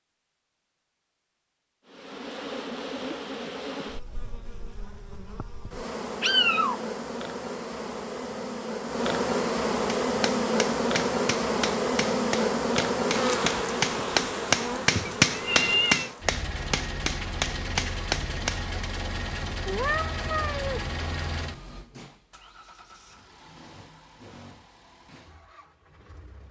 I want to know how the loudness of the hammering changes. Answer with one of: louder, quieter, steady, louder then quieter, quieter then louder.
louder then quieter.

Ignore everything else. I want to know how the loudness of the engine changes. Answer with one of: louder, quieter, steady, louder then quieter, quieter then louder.
quieter.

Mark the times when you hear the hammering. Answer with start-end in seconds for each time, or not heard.
10.1-18.9.